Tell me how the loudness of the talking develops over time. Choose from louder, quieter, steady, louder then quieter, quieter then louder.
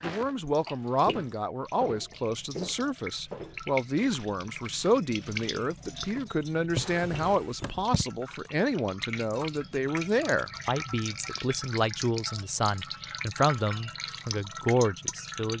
steady.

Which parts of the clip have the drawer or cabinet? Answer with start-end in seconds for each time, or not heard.
6.7-7.9.